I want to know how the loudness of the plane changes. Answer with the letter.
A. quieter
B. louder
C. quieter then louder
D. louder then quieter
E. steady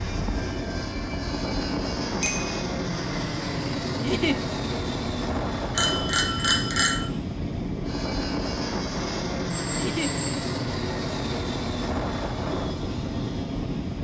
E.